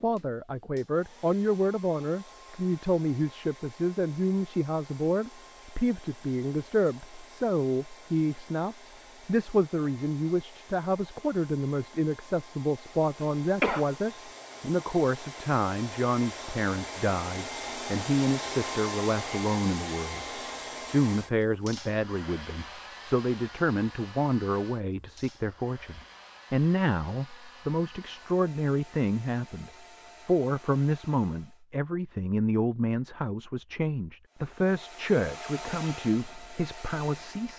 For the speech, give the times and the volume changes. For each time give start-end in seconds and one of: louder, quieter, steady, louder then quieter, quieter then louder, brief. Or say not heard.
0.0-37.5 steady.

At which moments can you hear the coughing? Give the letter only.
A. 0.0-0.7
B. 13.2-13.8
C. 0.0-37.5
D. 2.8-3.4
B.